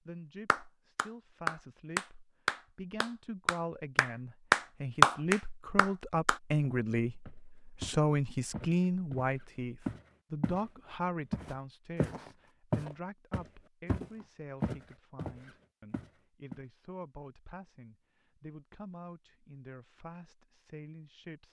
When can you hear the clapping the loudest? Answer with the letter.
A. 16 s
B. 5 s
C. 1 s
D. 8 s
B.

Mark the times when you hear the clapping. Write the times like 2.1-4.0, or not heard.
0.5-6.3.